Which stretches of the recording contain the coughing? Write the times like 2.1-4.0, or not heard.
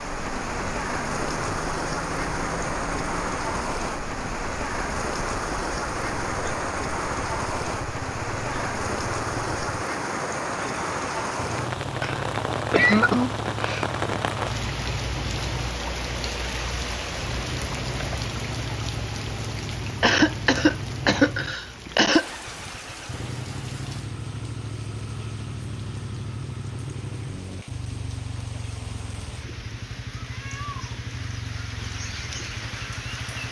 12.0-13.8, 20.0-22.2.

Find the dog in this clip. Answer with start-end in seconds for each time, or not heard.
not heard.